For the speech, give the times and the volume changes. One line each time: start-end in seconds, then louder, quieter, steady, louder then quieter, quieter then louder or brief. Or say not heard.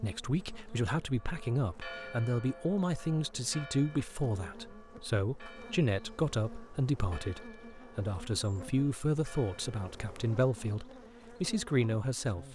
0.0-12.5 steady.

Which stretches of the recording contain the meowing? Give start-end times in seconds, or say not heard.
not heard.